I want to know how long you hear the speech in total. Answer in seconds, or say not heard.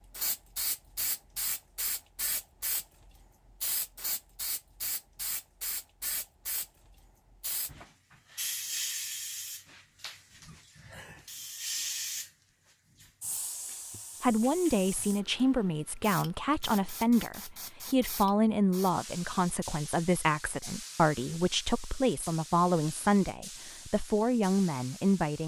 11 s.